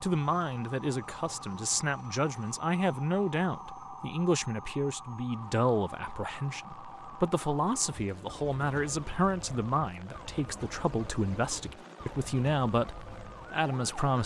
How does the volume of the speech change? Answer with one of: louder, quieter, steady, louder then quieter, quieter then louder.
steady.